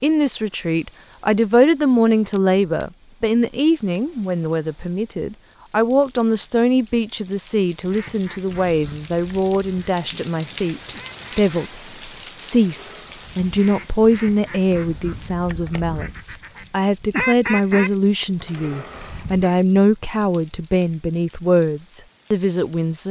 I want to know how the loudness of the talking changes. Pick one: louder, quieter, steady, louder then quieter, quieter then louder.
steady.